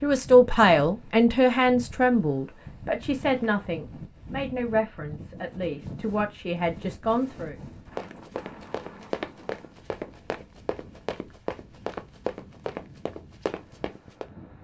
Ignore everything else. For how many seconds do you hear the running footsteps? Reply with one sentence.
You can hear the running footsteps for 6 seconds altogether.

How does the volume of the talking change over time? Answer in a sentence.
The volume of the talking goes down.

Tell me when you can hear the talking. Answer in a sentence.
You can hear the talking from 0.0 to 7.5 s.